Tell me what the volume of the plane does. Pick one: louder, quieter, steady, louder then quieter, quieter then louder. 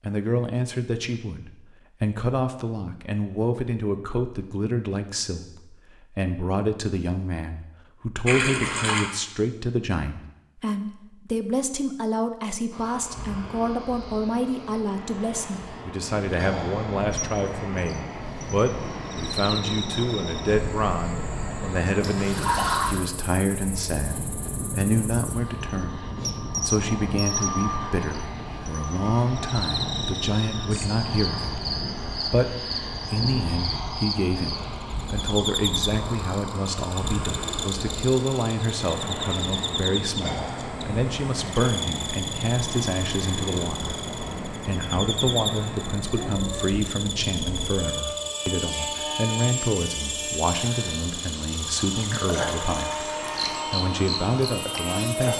steady.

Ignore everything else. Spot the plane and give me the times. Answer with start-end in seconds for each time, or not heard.
12.7-55.3.